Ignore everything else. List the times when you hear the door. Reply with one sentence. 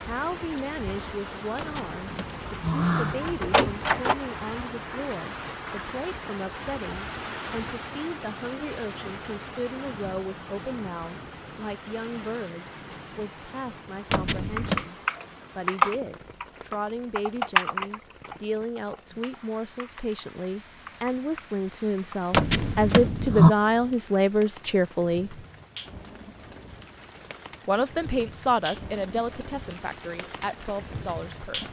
The door can be heard from 1.6 to 4.2 s, from 14.1 to 14.8 s and from 22.3 to 23.6 s.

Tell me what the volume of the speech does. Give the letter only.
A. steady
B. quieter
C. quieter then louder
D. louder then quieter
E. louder
E.